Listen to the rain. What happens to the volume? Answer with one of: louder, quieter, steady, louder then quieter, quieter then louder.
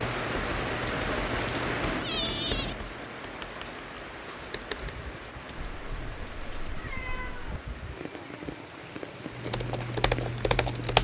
quieter.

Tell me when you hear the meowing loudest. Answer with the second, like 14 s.
2 s.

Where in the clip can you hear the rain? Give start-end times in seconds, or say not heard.
0.0-11.0.